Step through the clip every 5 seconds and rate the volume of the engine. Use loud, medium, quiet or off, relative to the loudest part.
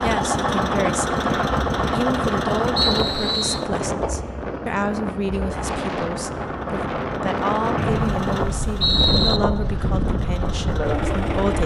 loud, medium, loud.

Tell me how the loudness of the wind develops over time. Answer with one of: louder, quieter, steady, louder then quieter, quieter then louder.
steady.